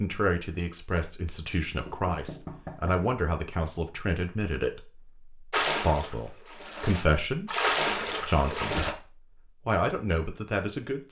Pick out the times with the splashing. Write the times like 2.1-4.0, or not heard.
5.5-8.9.